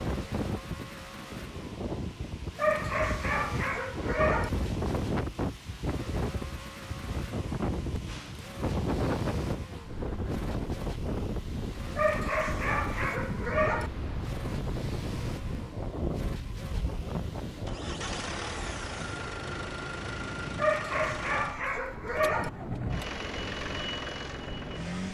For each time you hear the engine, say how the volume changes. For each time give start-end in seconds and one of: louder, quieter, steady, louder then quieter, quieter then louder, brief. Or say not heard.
0.0-25.0 louder.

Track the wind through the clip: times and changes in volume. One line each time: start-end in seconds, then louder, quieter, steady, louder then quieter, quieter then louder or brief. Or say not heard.
0.0-25.0 quieter.